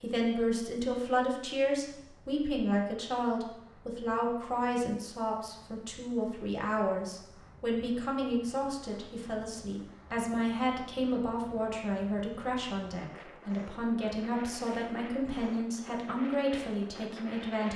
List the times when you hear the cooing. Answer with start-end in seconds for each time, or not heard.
not heard.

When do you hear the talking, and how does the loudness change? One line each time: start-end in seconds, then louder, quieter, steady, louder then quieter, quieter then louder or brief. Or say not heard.
0.0-17.7 steady.